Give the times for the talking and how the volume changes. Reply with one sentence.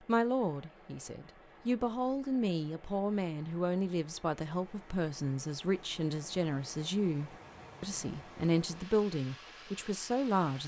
You can hear the talking from 0.1 to 10.6 s, at a steady volume.